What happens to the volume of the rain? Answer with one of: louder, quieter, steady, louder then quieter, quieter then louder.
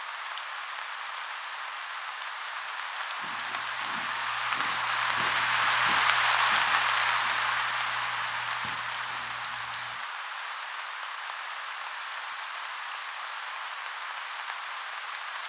louder then quieter.